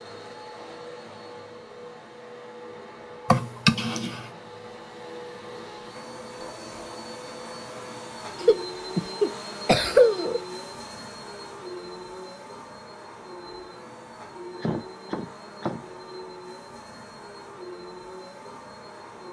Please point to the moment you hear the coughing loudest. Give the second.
10 s.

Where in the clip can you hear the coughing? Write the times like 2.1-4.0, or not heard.
3.3-4.2, 8.4-10.4, 14.6-15.8.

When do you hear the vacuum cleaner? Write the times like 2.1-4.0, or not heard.
0.0-19.2.